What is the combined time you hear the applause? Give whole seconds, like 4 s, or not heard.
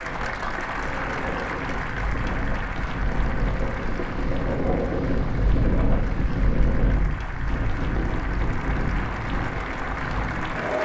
11 s.